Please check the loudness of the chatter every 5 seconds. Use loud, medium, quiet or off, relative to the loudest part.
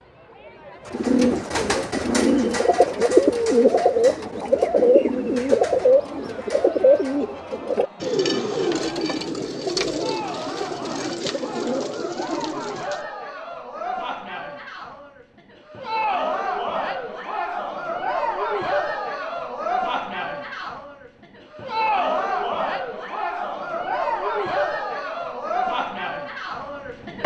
quiet, quiet, medium, loud, loud, loud.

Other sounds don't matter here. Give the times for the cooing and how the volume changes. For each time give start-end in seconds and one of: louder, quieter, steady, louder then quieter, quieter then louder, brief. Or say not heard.
0.8-13.1 quieter.